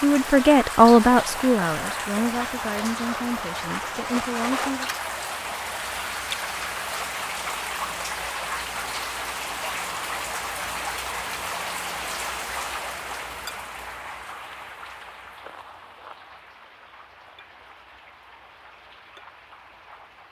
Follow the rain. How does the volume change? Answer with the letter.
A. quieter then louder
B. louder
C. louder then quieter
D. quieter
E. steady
D.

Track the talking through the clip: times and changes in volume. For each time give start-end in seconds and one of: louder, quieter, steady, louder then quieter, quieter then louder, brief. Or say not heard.
0.0-4.9 quieter.